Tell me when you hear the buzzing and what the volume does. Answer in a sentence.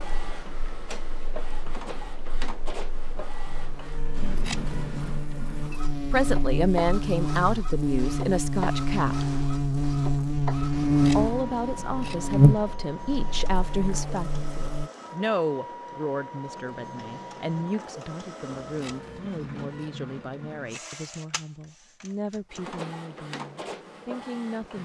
The buzzing can be heard from 0.0 to 14.9 s, getting louder.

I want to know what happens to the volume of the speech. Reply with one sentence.
The loudness of the speech goes down.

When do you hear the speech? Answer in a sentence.
The speech can be heard from 6.1 to 9.3 s and from 11.2 to 24.8 s.